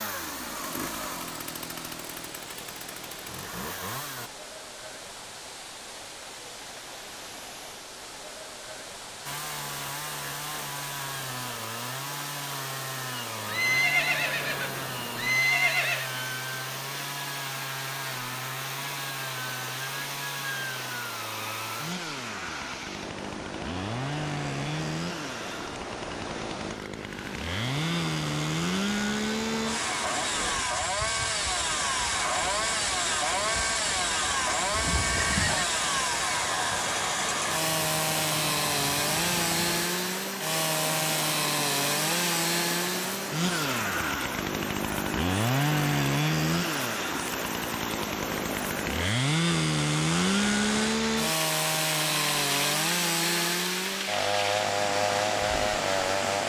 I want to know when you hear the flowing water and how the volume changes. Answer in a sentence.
You can hear the flowing water from 0.1 to 56.4 s, getting louder.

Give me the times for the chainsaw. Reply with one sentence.
The chainsaw can be heard from 0.0 to 4.3 s and from 9.2 to 56.4 s.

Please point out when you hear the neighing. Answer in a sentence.
The neighing can be heard from 13.4 to 16.1 s and from 34.7 to 35.6 s.